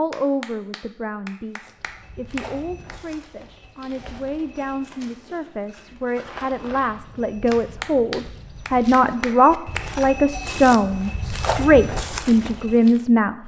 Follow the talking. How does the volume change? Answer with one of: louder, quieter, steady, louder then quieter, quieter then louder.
louder.